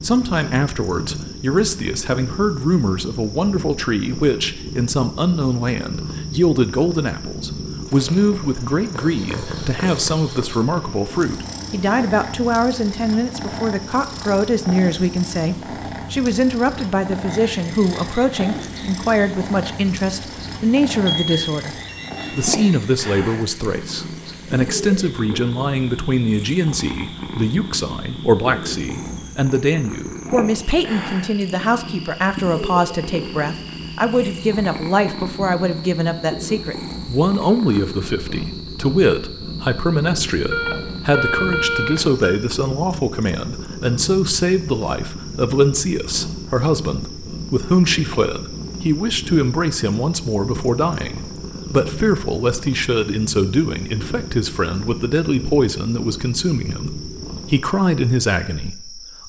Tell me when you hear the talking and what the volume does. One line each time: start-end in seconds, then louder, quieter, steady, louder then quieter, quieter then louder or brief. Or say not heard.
0.0-59.2 steady.